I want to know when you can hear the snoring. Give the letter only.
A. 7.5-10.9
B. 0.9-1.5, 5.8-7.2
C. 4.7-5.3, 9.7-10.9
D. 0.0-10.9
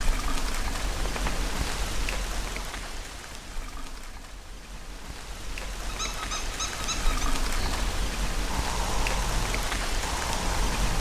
A.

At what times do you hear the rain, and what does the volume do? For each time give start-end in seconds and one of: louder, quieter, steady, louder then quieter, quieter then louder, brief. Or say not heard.
0.0-10.9 quieter then louder.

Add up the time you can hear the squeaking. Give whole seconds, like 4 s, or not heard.
2 s.